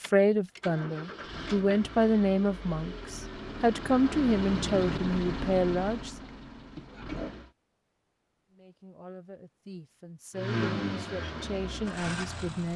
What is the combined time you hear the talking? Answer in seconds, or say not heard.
10 s.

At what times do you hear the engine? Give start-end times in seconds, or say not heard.
0.0-7.5, 10.3-12.7.